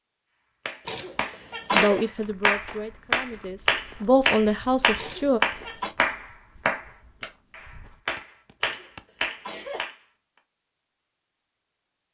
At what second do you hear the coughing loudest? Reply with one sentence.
The volume of the coughing peaks at 2 seconds.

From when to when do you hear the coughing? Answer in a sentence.
You can hear the coughing from 0.8 to 2.0 s, from 5.0 to 6.0 s and from 8.6 to 9.8 s.